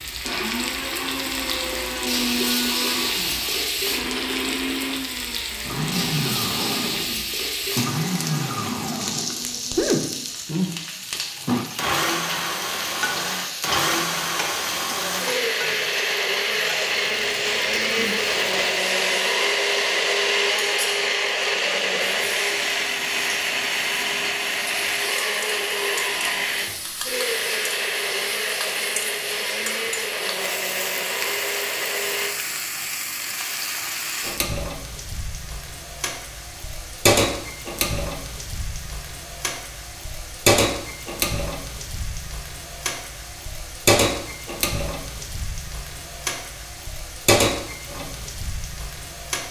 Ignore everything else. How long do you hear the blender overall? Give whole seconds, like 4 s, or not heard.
32 s.